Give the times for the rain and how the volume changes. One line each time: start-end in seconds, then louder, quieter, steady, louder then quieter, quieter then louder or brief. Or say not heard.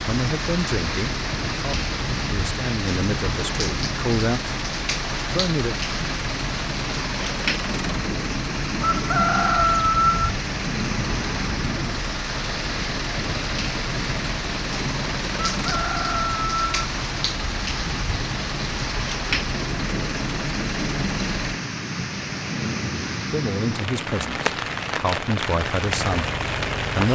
0.0-27.1 steady.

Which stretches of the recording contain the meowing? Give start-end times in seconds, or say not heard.
not heard.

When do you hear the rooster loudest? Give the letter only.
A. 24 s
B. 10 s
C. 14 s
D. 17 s
B.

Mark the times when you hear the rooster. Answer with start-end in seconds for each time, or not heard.
8.8-10.3, 15.5-16.9.